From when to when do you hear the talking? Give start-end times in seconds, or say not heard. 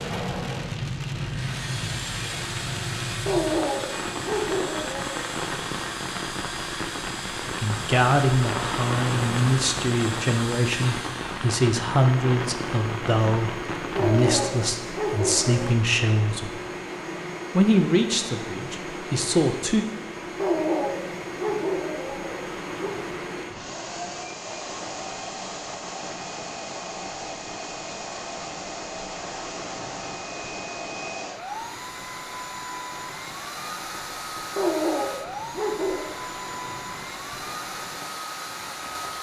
7.5-16.6, 17.5-19.9.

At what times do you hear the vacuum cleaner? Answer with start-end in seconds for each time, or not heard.
0.0-39.1.